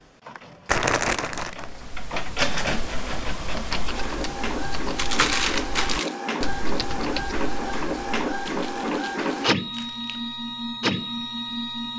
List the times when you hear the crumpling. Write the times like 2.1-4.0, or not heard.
0.7-1.8, 5.0-6.2, 8.4-10.3.